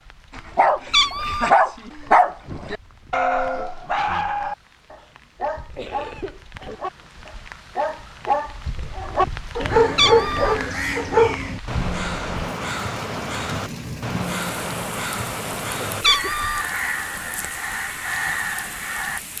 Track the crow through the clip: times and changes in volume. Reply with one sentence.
The crow can be heard from 9.6 to 19.2 s, at a steady volume.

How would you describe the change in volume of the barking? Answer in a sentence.
The volume of the barking goes down, then up.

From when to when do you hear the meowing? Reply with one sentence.
You can hear the meowing from 0.9 to 1.5 s, from 9.9 to 10.6 s and from 16.0 to 16.6 s.